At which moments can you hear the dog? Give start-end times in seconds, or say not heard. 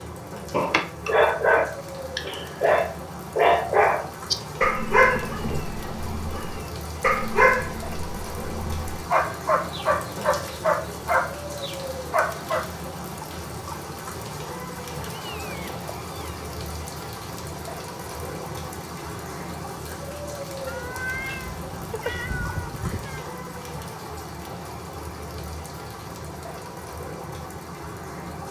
0.5-12.7.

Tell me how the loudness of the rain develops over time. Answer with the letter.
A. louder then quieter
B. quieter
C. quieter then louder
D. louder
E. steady
E.